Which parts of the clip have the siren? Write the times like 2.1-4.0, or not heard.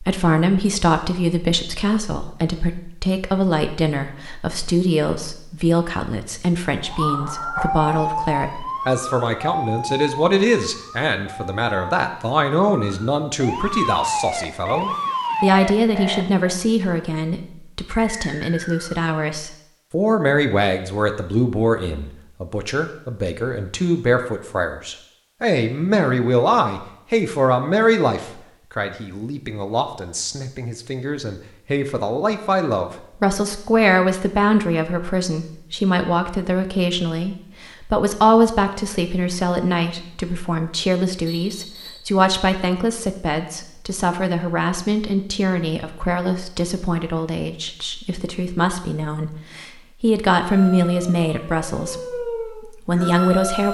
6.8-16.6, 50.4-53.6.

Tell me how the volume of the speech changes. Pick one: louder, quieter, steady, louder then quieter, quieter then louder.
steady.